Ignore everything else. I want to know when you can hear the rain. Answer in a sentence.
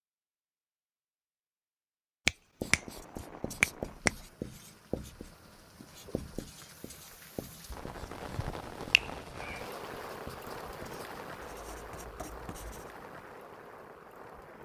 You can hear the rain from 2.6 to 14.6 s.